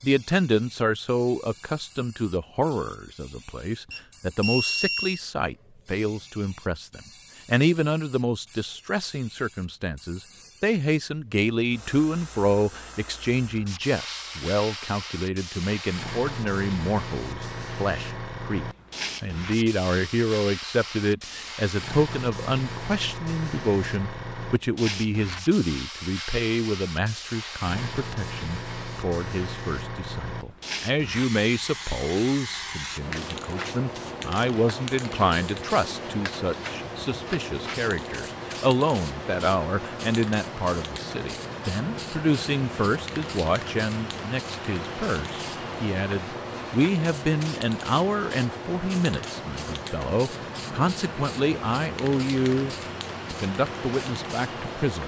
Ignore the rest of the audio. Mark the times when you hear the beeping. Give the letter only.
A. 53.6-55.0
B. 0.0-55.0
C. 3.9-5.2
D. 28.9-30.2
C.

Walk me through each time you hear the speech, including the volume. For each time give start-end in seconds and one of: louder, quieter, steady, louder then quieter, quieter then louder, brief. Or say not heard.
0.0-55.0 steady.